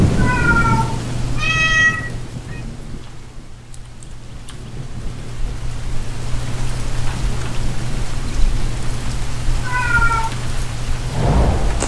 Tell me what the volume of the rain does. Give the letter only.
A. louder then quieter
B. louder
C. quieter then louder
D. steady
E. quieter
C.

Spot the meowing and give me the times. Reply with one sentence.
You can hear the meowing from 0.1 to 2.6 s and from 9.6 to 10.3 s.